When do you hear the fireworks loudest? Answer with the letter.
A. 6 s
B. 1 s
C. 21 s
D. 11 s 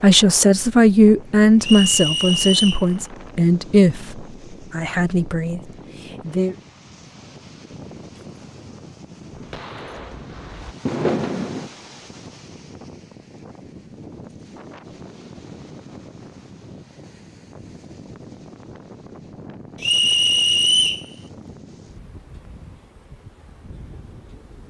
D.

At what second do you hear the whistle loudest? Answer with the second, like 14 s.
21 s.